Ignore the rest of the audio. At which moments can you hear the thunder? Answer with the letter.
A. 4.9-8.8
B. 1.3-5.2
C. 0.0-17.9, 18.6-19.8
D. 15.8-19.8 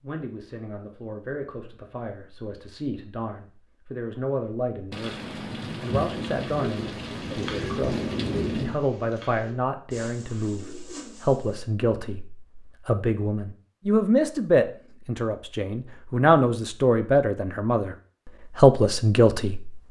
A.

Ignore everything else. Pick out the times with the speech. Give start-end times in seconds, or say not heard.
0.0-17.9, 18.6-19.8.